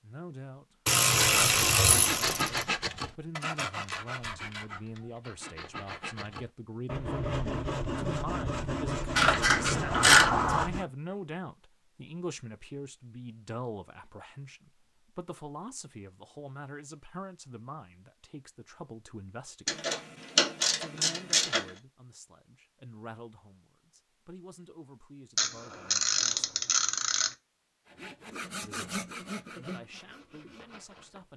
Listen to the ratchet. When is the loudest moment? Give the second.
10 s.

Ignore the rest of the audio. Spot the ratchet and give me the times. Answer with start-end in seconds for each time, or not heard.
0.8-2.6, 9.2-10.7, 19.6-21.7, 25.4-27.4.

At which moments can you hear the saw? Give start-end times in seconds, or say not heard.
1.1-10.8, 27.9-31.2.